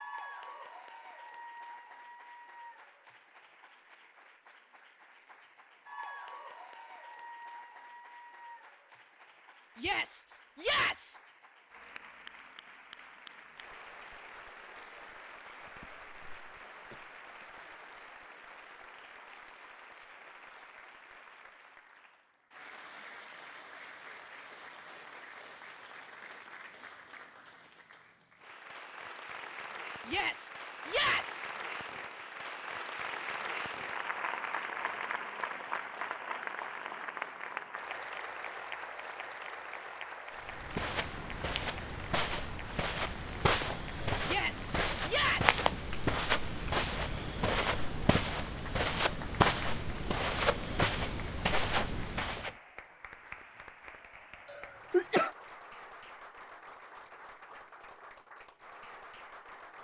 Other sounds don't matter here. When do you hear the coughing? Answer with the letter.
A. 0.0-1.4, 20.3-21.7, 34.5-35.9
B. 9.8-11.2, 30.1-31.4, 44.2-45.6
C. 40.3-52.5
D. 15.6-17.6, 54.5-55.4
D.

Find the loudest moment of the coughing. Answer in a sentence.
The loudest moment of the coughing is at 55 seconds.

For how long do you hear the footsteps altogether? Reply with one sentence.
You can hear the footsteps for 12 seconds altogether.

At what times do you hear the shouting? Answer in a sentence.
The shouting can be heard from 9.8 to 11.2 s, from 30.1 to 31.4 s and from 44.2 to 45.6 s.